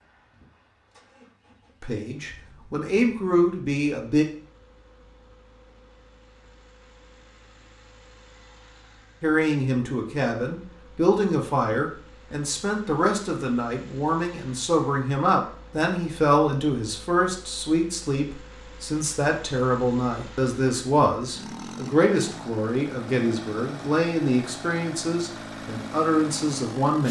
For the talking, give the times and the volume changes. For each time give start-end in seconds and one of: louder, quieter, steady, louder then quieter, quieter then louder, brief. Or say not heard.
1.8-4.2 brief
9.2-27.0 steady.